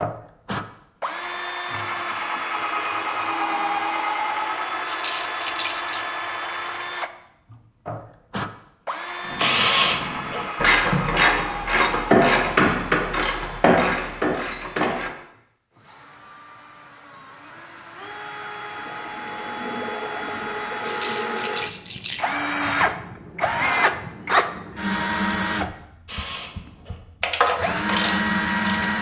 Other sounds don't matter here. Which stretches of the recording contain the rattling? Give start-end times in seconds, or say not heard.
4.8-6.0, 20.8-22.3.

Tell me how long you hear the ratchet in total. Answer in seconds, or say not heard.
9 s.